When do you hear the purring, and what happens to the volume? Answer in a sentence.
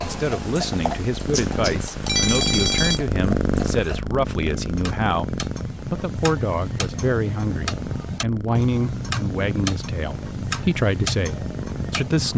The purring can be heard from 0.0 to 12.3 s, getting quieter.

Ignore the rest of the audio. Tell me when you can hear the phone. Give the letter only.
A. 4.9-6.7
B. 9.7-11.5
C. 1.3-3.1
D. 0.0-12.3
C.